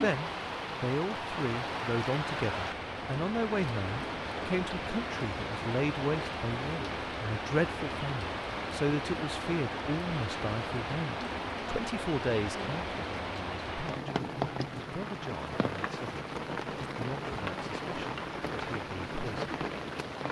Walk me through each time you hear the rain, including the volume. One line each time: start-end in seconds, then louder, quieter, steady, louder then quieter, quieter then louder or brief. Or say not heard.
0.0-20.2 steady.